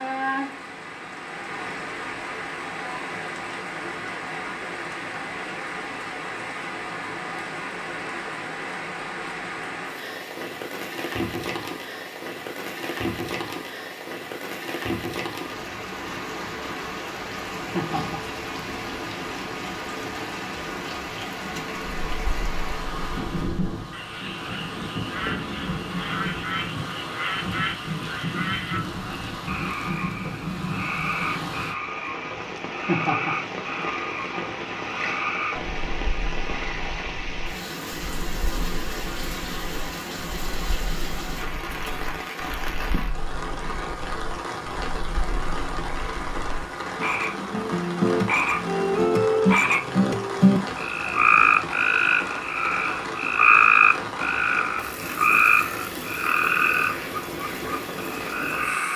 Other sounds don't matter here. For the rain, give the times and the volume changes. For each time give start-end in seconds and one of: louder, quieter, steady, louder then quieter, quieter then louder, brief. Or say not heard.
0.0-58.9 steady.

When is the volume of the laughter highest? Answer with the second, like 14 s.
33 s.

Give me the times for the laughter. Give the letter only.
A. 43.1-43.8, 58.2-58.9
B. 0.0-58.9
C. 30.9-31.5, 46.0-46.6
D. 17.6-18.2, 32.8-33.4
D.